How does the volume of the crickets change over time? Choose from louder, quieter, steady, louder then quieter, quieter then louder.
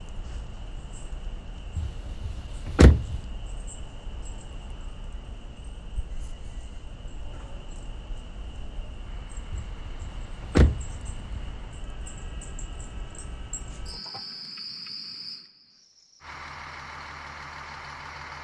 louder.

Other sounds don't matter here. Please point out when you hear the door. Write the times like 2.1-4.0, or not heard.
1.8-3.2, 9.5-11.3.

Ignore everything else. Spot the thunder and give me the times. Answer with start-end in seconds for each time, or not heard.
not heard.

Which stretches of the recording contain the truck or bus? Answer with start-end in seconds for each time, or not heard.
9.0-14.6, 16.2-18.3.